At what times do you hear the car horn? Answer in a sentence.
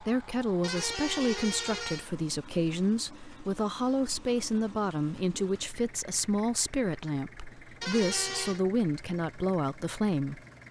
You can hear the car horn from 0.6 to 2.1 s and from 7.8 to 8.6 s.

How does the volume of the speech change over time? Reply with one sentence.
The volume of the speech stays about the same.